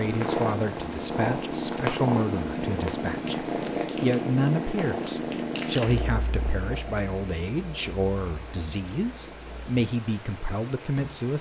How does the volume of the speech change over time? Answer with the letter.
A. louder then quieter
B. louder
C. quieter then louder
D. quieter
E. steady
E.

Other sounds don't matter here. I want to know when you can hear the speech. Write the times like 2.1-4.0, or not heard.
0.0-11.3.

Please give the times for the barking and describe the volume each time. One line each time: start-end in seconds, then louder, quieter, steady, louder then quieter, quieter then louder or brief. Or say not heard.
not heard.